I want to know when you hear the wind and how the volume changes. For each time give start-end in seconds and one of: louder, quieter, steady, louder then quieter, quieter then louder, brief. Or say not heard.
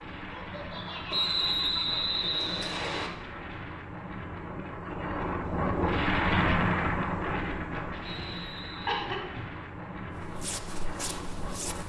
0.0-11.8 louder then quieter.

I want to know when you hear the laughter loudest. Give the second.
9 s.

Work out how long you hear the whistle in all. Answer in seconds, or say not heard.
3 s.